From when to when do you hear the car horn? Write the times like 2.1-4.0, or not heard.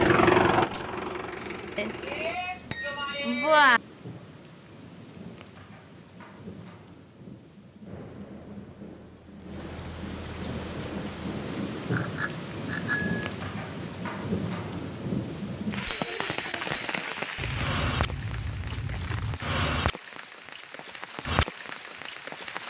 not heard.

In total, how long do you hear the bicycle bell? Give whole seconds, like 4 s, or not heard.
5 s.